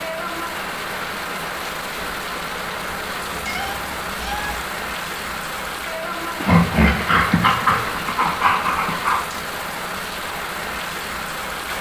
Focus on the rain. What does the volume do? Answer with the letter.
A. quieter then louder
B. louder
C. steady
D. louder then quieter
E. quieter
C.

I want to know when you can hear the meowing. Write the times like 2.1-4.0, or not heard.
3.3-4.8.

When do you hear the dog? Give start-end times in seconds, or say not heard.
6.4-9.2.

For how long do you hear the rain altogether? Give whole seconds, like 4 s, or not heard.
12 s.